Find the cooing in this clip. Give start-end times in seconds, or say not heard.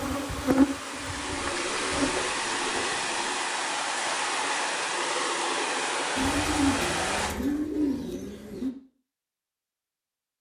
1.2-3.5, 6.2-8.7.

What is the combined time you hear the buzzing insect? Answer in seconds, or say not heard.
2 s.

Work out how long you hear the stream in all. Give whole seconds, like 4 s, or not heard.
7 s.